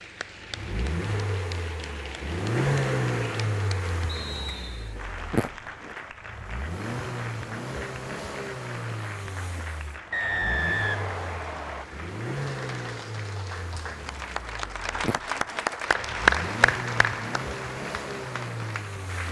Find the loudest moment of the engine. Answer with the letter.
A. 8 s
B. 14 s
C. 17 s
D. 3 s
D.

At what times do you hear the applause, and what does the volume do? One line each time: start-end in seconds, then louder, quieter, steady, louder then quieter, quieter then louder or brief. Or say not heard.
0.0-19.2 louder.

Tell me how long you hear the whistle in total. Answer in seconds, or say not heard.
3 s.